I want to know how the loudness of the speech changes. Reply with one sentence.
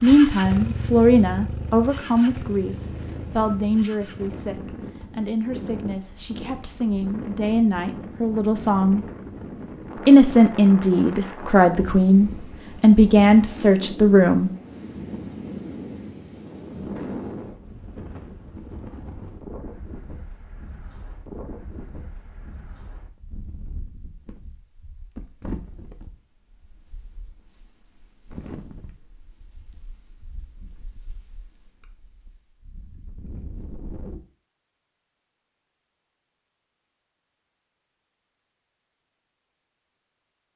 The volume of the speech goes down, then up.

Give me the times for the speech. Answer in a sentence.
The speech can be heard from 0.0 to 9.0 s and from 9.9 to 14.5 s.